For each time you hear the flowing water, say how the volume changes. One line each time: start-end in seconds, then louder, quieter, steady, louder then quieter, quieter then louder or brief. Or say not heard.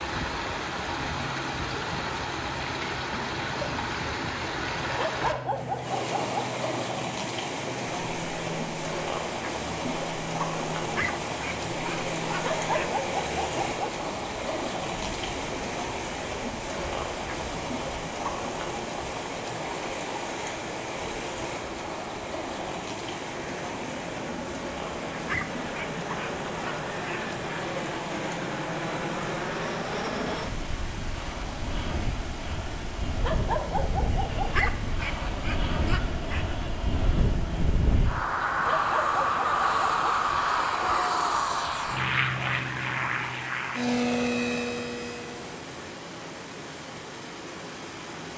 0.0-48.3 quieter.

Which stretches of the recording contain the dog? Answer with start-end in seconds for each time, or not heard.
5.0-6.5, 12.4-13.9, 33.2-34.7, 38.6-40.1.